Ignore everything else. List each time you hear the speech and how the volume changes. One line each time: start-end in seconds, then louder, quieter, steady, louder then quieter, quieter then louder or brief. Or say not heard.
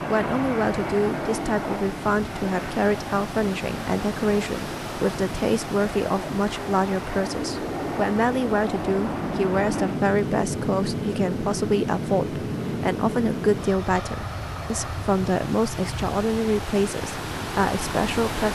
0.1-18.5 steady.